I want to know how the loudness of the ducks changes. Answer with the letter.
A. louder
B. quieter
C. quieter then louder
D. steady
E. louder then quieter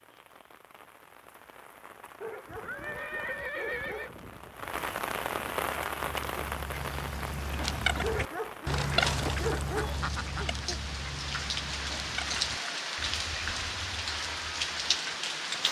E.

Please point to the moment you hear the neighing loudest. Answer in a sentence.
The volume of the neighing peaks at 4 seconds.